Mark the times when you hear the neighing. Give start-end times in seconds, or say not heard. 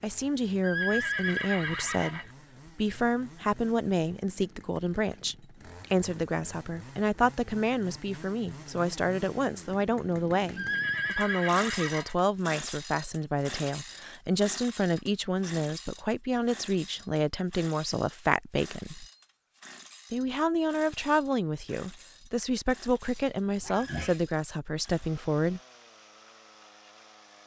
0.6-2.3, 10.6-12.2, 23.1-24.2.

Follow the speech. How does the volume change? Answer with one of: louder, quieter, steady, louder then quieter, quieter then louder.
steady.